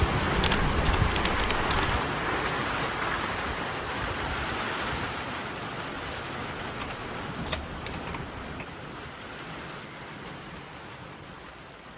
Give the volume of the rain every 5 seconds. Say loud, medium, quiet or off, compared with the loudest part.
loud, medium, quiet.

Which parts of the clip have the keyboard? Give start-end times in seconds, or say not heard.
0.3-2.0, 6.5-8.7.